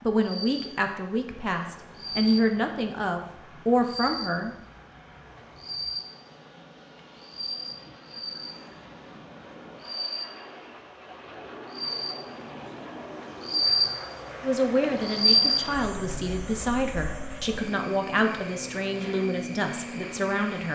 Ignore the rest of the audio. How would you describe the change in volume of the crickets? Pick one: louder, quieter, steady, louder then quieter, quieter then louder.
louder then quieter.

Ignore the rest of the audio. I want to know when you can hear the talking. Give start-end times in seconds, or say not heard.
0.0-4.5, 14.4-20.7.